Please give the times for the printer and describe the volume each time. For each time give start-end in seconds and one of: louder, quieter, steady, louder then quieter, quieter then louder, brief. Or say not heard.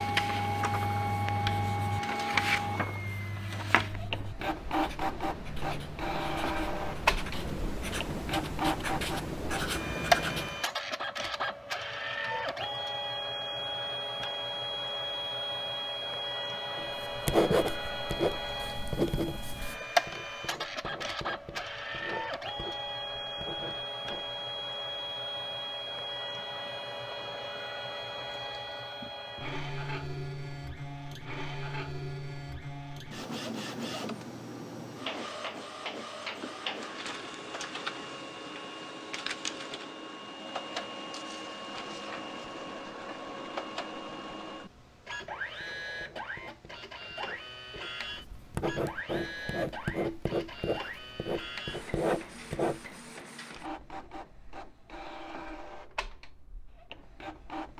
0.0-57.7 quieter.